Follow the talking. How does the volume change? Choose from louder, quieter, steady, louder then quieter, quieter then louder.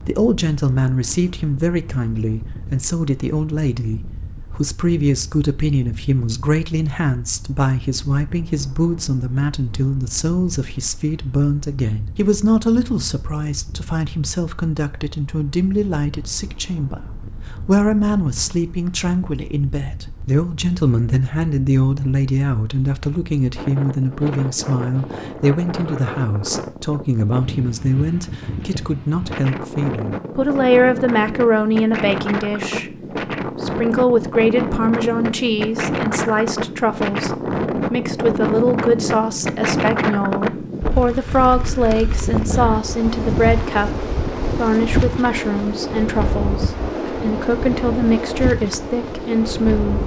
steady.